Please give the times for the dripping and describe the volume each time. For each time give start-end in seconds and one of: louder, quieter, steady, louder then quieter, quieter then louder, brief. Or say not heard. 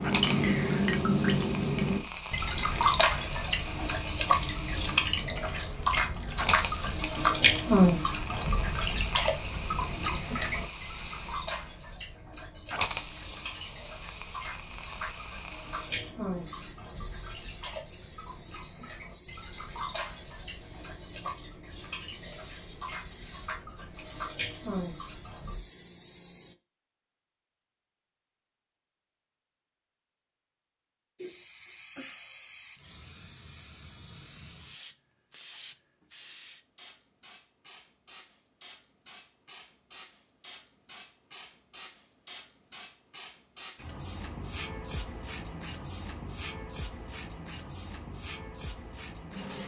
0.0-25.6 quieter.